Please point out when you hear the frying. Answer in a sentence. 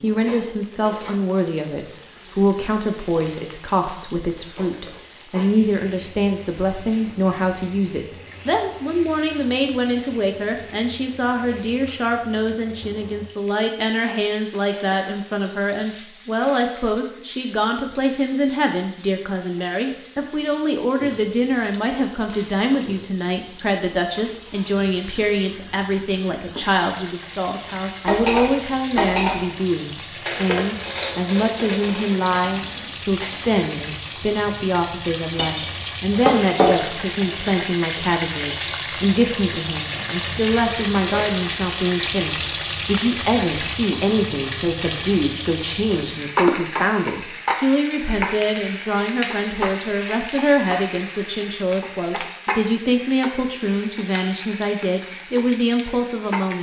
The frying can be heard from 0.0 to 56.5 s.